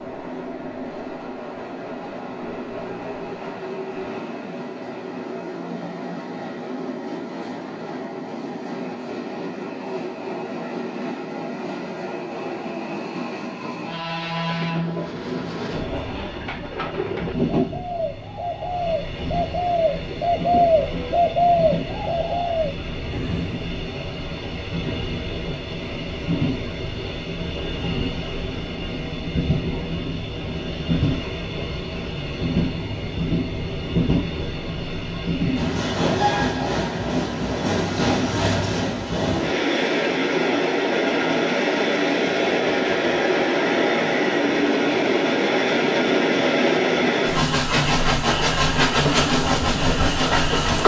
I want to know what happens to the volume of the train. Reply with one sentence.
The loudness of the train goes up.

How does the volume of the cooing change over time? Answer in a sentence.
The loudness of the cooing goes up.